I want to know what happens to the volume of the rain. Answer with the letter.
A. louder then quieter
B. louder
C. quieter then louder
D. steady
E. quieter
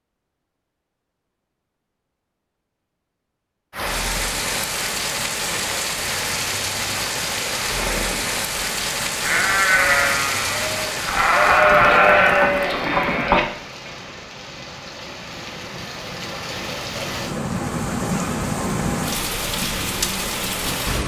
C.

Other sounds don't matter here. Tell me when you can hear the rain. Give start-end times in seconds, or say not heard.
3.7-21.0.